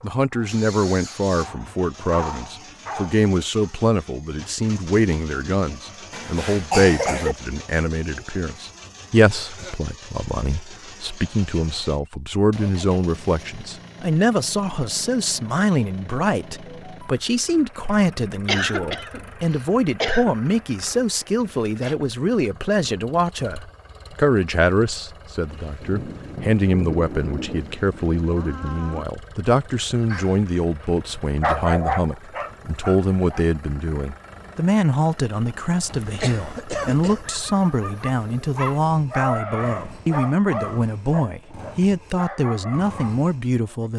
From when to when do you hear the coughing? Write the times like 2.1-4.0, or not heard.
6.1-7.3, 18.4-20.4, 35.9-37.2.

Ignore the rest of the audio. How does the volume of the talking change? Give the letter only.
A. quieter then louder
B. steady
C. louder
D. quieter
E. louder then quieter
B.